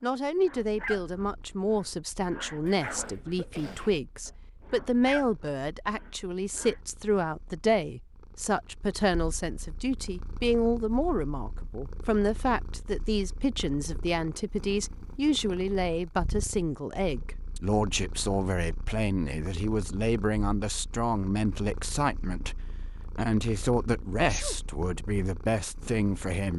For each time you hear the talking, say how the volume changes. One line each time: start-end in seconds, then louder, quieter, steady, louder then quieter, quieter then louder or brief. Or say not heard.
0.0-26.5 steady.